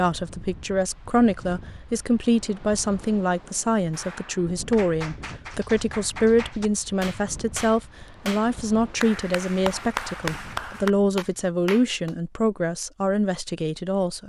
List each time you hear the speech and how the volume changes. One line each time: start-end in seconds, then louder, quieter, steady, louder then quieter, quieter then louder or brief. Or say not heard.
0.0-14.2 steady.